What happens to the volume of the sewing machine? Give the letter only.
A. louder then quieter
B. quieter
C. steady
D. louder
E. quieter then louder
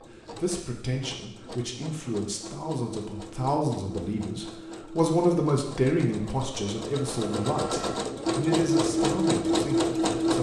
D.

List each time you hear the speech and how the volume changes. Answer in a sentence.
You can hear the speech from 0.0 to 10.3 s, getting louder then quieter.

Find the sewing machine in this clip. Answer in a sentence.
The sewing machine can be heard from 0.0 to 10.3 s.